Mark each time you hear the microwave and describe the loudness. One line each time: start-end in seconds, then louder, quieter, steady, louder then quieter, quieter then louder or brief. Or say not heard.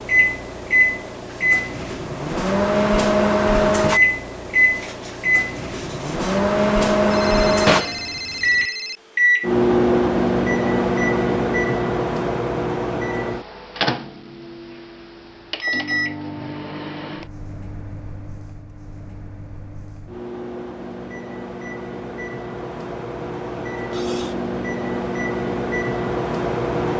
0.0-26.9 quieter then louder.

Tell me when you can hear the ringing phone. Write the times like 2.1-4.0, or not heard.
7.1-9.0.